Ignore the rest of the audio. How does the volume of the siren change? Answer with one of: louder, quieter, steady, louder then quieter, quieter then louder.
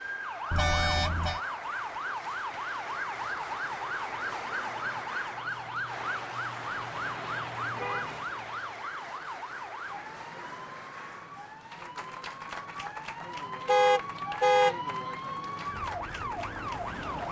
quieter then louder.